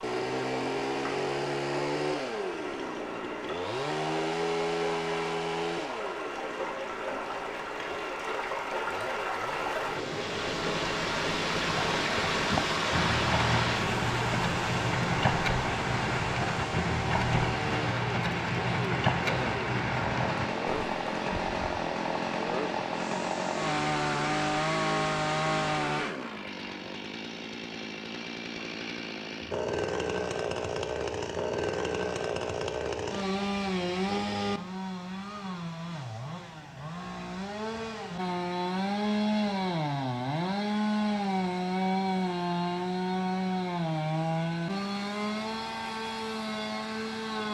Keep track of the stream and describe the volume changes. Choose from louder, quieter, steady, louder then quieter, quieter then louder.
louder then quieter.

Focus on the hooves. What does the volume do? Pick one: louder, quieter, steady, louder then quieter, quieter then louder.
steady.